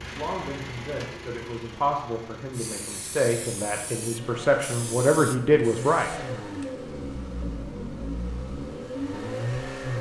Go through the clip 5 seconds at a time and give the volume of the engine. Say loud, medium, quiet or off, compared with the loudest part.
medium, loud.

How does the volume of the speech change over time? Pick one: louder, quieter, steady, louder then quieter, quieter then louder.
louder.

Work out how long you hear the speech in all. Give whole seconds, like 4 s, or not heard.
6 s.